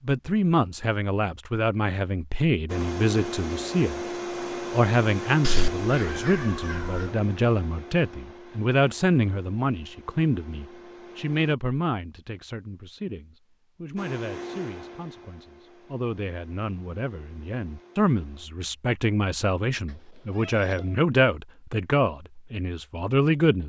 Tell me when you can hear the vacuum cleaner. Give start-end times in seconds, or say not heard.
2.6-11.6, 13.9-18.5.